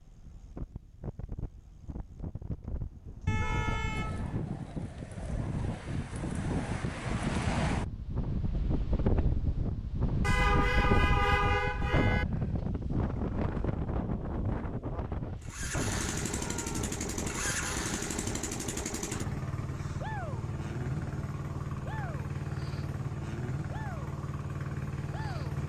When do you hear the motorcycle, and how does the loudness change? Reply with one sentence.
You can hear the motorcycle from 15.4 to 25.6 s, at a steady volume.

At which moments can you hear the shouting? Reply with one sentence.
The shouting can be heard from 3.4 to 4.0 s and from 16.2 to 16.9 s.